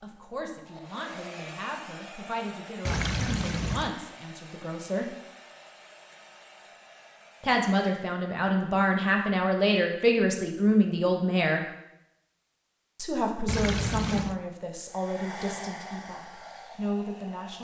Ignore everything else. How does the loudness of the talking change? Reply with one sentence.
The volume of the talking goes up, then down.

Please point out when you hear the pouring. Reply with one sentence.
You can hear the pouring from 2.9 to 3.9 s and from 13.4 to 14.4 s.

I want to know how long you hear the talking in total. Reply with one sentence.
The talking can be heard for 14 seconds in total.